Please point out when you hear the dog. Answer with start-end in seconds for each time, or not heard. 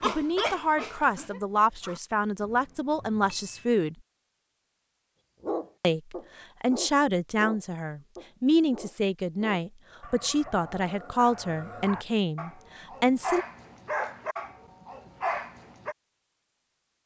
0.0-2.0, 5.4-15.9.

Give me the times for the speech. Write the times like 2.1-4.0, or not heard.
0.0-4.0, 5.8-13.4.